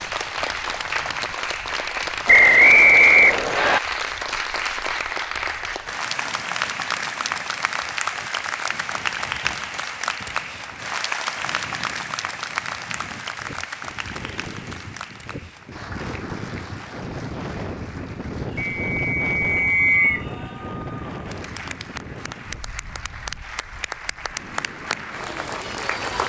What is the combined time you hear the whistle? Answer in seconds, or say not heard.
3 s.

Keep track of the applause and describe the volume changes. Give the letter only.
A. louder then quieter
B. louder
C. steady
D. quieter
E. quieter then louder
E.